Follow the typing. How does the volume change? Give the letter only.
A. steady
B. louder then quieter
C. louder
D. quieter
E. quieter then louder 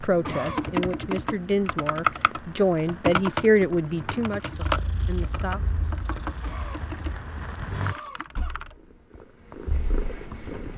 D.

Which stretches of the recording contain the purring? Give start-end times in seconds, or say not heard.
4.5-10.7.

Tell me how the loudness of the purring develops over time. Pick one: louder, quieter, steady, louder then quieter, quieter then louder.
quieter then louder.